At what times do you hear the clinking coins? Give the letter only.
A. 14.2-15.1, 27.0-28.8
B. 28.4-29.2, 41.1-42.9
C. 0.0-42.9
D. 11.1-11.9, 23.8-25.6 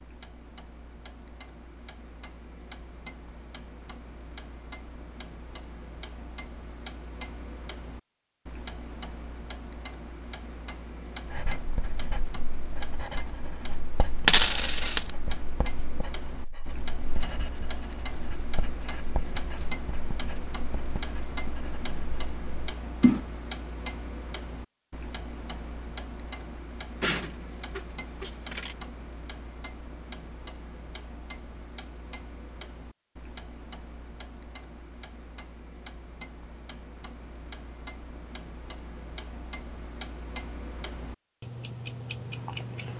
A.